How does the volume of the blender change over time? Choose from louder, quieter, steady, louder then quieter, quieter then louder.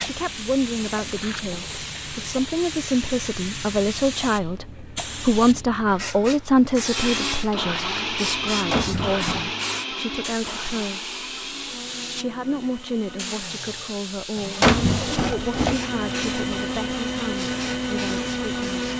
quieter then louder.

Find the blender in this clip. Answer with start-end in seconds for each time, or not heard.
7.0-18.9.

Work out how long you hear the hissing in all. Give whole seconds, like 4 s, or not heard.
19 s.